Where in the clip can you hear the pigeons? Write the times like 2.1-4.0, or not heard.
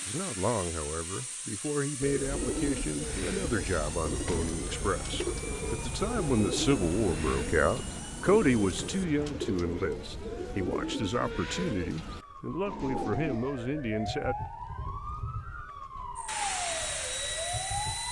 2.0-13.4.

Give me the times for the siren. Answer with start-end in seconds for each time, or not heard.
3.0-18.0.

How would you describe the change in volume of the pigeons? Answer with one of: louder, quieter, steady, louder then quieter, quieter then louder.
steady.